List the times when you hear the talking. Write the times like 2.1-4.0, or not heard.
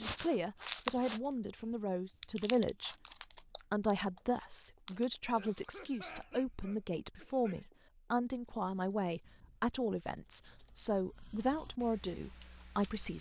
0.0-3.0, 3.5-13.1.